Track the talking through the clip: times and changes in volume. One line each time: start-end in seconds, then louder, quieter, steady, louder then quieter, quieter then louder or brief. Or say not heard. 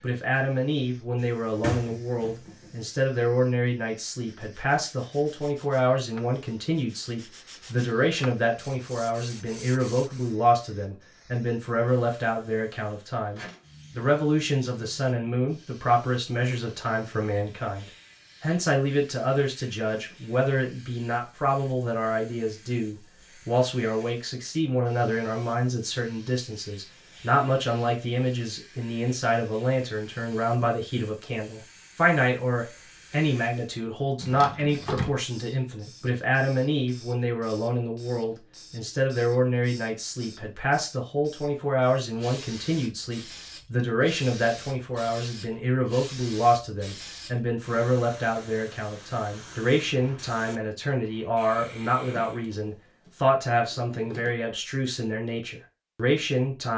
0.0-56.7 steady.